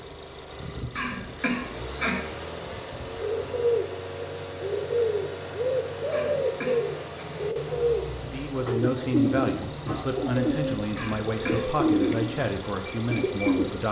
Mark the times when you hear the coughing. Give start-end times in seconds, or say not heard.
0.9-2.2, 6.1-7.2, 10.9-12.1.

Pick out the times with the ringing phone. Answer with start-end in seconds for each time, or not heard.
not heard.